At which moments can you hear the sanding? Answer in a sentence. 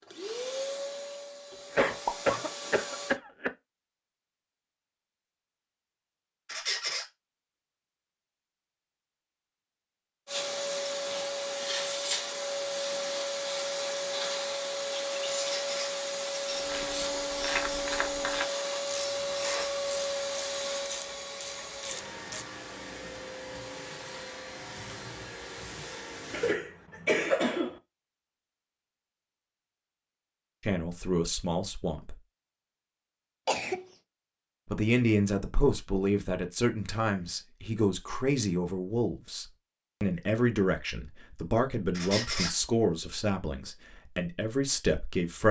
The sanding can't be heard in this clip.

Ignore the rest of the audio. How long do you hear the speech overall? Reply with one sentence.
The speech can be heard for 12 seconds in total.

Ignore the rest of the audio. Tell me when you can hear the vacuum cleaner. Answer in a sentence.
The vacuum cleaner can be heard from 0.0 to 3.2 s and from 10.2 to 26.6 s.